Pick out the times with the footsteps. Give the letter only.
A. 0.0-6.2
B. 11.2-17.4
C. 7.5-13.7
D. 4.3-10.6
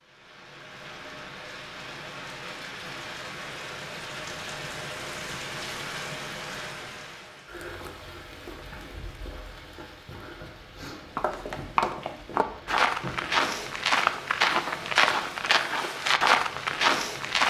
B.